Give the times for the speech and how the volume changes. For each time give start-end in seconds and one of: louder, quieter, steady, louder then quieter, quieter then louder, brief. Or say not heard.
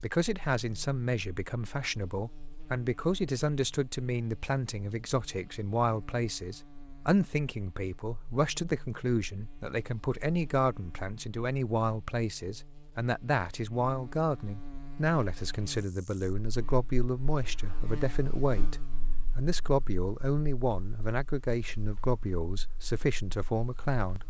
0.0-24.2 steady.